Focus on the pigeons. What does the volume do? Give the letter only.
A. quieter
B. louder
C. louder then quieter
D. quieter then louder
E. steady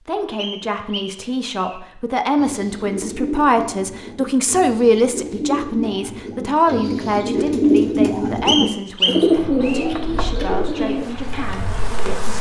C.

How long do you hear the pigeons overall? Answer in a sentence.
You can hear the pigeons for 10 seconds altogether.